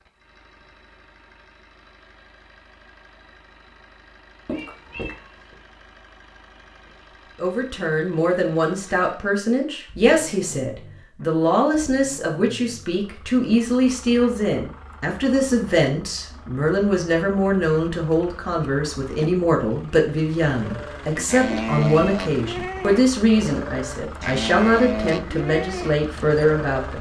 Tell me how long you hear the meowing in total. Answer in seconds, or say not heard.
2 s.